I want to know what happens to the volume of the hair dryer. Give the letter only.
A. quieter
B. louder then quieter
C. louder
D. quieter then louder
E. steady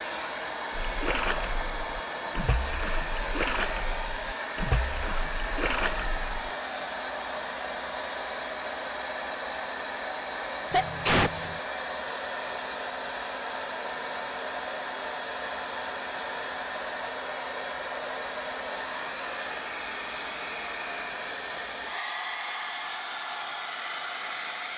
E.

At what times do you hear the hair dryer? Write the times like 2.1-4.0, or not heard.
0.0-24.7.